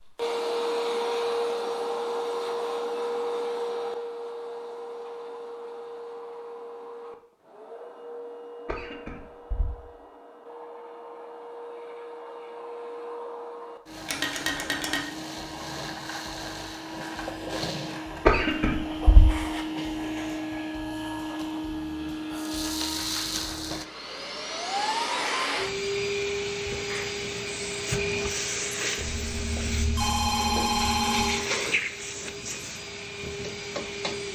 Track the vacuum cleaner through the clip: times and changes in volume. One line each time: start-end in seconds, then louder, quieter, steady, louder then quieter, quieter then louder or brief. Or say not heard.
0.0-34.3 quieter then louder.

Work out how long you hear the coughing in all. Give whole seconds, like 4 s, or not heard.
2 s.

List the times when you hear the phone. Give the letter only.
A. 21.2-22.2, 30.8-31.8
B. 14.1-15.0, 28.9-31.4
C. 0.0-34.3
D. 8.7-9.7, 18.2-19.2
B.